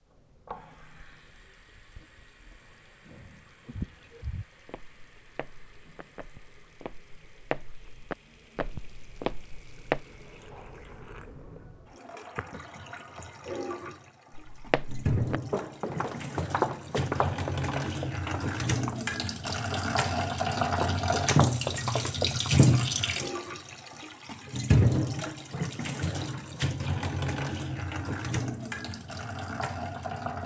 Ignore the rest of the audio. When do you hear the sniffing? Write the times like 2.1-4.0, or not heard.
3.6-4.5.